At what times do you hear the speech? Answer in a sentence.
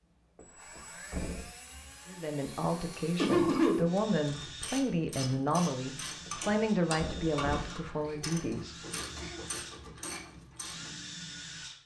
You can hear the speech from 2.0 to 9.1 s.